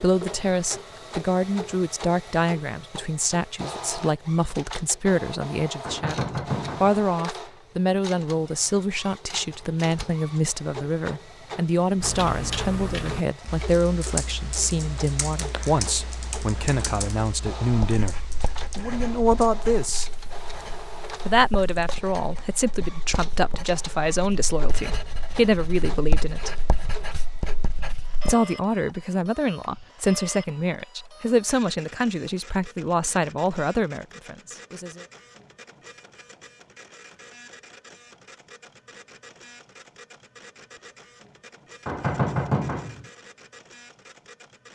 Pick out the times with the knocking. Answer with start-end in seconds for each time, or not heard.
5.8-7.0, 41.9-43.0.